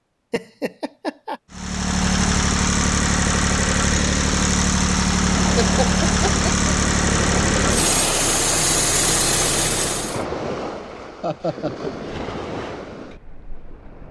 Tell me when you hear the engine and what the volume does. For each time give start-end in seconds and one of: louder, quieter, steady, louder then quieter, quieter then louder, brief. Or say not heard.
1.5-10.2 steady.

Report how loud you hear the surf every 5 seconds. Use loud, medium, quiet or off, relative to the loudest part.
off, loud, loud.